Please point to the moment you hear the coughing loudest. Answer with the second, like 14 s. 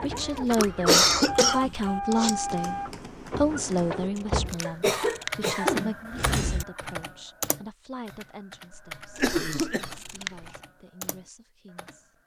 1 s.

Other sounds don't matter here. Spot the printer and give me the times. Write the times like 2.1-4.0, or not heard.
0.0-4.6.